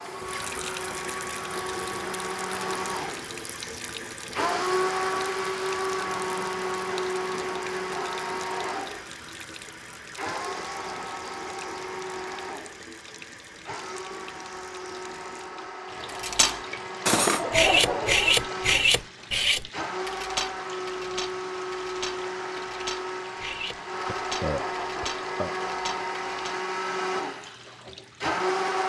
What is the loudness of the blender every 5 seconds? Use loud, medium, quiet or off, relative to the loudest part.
loud, loud, medium, medium, loud, loud.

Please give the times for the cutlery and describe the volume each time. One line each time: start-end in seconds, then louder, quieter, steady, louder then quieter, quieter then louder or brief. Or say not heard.
16.2-26.6 quieter.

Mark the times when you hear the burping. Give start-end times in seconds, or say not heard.
24.1-25.5.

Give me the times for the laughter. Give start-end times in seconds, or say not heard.
17.4-18.8.